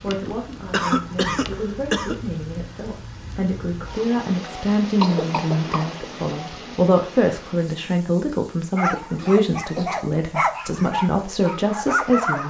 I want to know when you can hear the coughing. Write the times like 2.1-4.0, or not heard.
0.1-2.1, 5.0-6.0, 9.2-9.9.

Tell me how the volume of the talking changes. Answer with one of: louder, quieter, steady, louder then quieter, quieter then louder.
louder.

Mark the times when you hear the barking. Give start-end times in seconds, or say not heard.
8.8-12.4.